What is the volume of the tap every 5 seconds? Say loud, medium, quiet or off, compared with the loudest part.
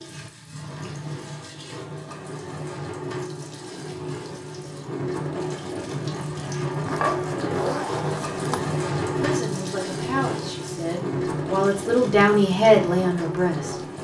medium, loud, loud.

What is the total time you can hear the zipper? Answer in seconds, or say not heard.
2 s.